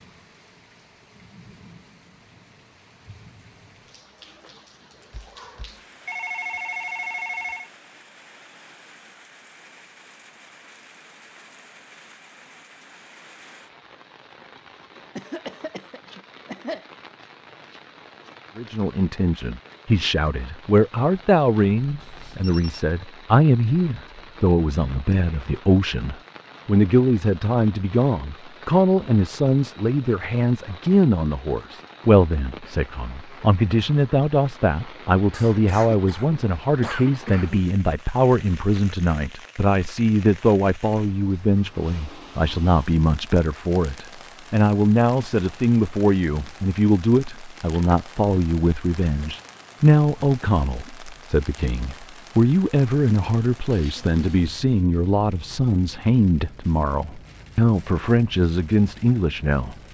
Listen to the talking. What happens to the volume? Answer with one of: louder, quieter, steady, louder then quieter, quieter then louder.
steady.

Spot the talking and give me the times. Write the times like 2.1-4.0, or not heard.
18.6-59.8.